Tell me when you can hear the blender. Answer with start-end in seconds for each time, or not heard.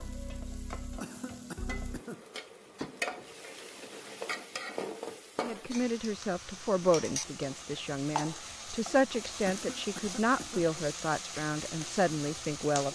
not heard.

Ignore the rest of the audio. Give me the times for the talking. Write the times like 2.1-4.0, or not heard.
5.4-12.8.